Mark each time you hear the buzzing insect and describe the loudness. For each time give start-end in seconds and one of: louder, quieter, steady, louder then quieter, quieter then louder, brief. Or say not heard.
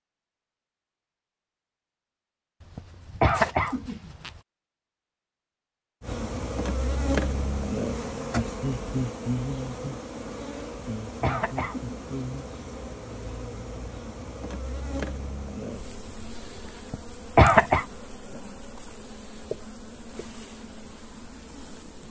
6.0-22.0 quieter.